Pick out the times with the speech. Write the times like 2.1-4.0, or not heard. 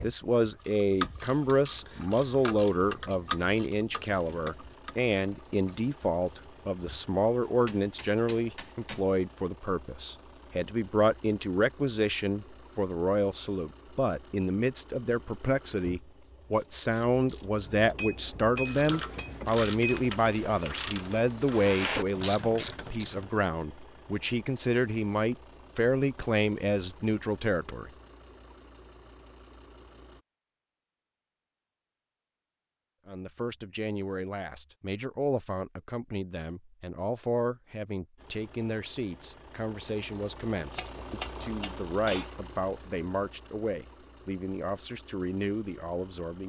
0.0-27.9, 33.0-46.4.